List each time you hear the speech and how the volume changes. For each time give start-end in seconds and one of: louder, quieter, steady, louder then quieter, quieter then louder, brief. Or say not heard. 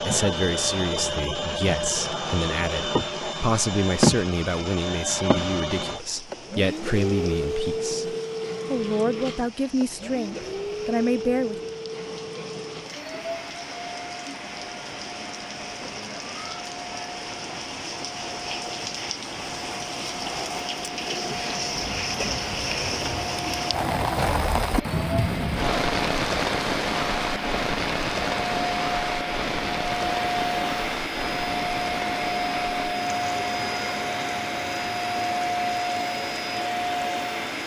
0.0-11.6 steady.